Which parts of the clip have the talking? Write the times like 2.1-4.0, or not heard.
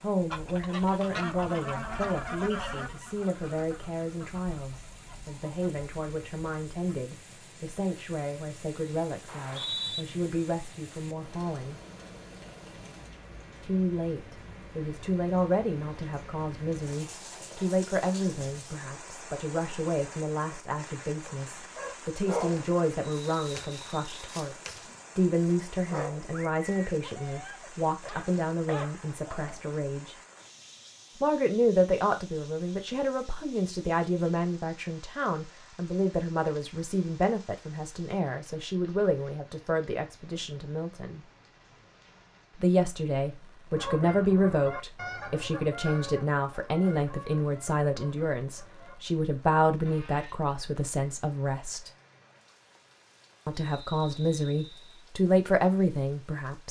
0.0-11.8, 13.6-30.1, 31.2-41.2, 42.5-51.9, 53.5-56.6.